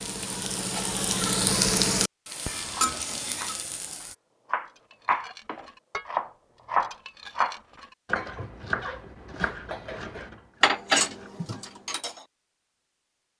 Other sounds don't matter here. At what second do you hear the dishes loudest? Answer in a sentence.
The loudest moment of the dishes is at 11 seconds.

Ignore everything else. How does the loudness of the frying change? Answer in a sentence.
The loudness of the frying goes up, then down.